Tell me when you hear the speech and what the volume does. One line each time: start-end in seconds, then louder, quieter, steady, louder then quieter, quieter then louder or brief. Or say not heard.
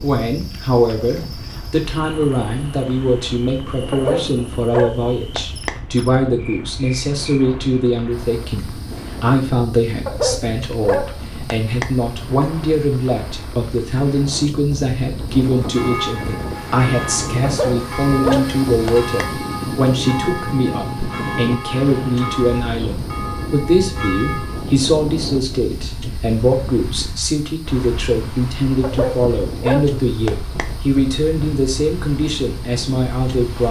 0.0-33.6 steady.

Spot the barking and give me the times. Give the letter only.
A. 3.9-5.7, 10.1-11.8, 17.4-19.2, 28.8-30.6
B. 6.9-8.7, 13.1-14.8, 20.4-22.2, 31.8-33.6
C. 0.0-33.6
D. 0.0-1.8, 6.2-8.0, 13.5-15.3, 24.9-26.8
A.